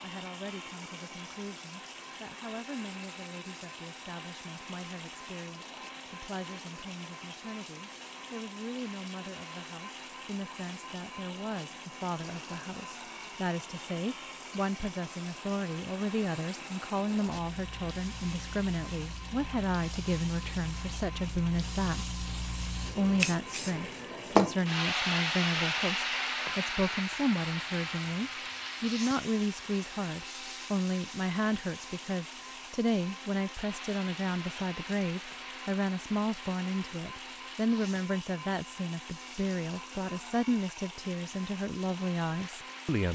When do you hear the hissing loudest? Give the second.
25 s.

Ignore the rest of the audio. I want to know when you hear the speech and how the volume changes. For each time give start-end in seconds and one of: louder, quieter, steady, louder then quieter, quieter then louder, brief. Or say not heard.
0.0-22.1 louder
22.9-43.0 steady.